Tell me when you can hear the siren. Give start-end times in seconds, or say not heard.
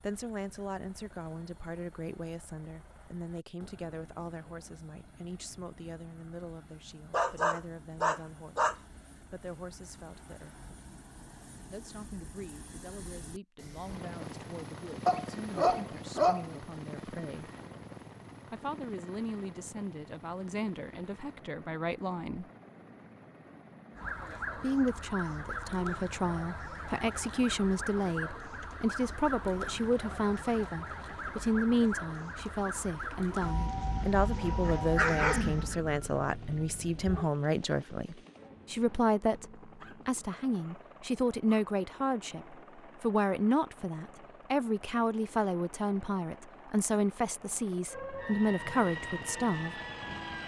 23.9-37.3, 47.9-50.4.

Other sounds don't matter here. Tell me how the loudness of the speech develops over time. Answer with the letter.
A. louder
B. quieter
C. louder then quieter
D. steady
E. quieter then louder
A.